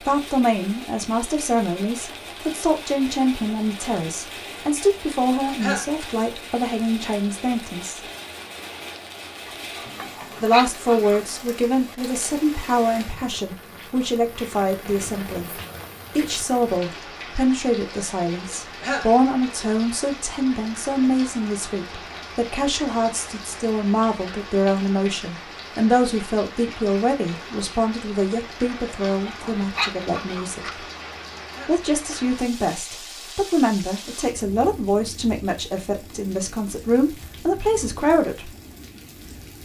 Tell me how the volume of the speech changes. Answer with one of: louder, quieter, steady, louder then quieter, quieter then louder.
steady.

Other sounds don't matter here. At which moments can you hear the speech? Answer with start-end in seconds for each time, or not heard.
0.1-8.0, 10.4-30.6, 31.6-38.5.